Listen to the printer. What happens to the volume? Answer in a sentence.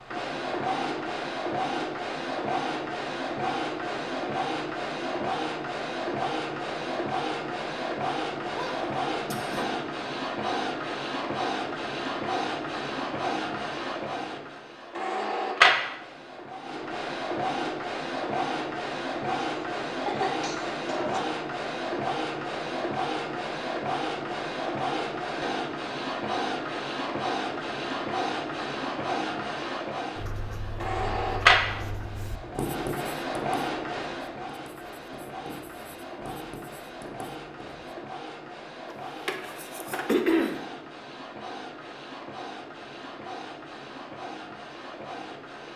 The volume of the printer goes down.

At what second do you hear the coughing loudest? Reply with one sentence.
The volume of the coughing peaks at 40 seconds.